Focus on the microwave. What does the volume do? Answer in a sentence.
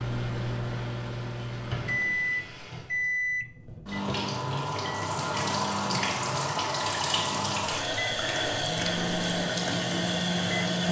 The volume of the microwave goes down, then up.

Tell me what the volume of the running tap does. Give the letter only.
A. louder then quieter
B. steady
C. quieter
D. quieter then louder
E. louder
E.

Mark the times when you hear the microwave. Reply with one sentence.
You can hear the microwave from 0.0 to 10.8 s.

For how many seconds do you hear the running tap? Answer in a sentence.
The running tap can be heard for 11 seconds in total.